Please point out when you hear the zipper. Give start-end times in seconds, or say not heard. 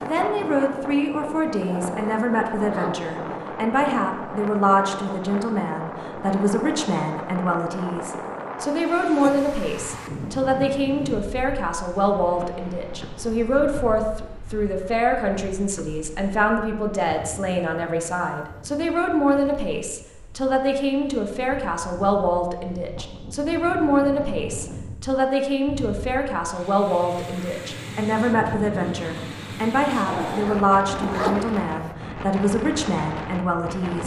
1.6-3.0, 30.1-31.9.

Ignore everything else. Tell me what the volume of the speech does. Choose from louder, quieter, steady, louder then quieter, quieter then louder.
steady.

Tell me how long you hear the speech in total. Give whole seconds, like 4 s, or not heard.
34 s.